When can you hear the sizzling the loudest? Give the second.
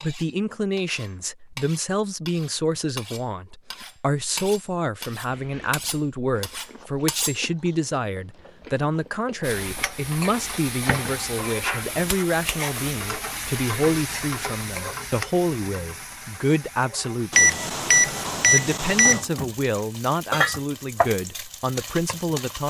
21 s.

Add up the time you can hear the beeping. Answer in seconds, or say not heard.
2 s.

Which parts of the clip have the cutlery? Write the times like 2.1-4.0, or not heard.
0.0-7.4.